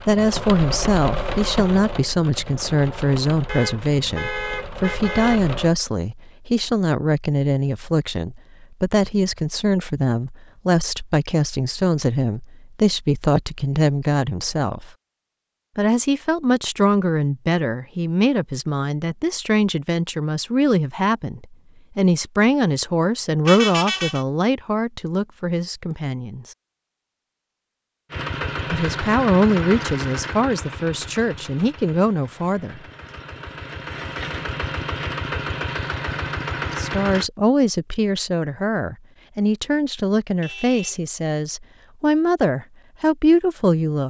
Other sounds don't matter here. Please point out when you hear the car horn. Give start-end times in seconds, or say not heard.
3.5-5.4, 23.4-24.2, 40.4-41.0.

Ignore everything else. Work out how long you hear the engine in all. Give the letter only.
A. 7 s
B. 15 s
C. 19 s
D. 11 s
B.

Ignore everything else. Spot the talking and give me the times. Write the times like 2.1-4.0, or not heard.
0.1-14.9, 15.8-26.4, 28.7-32.8, 36.7-44.0.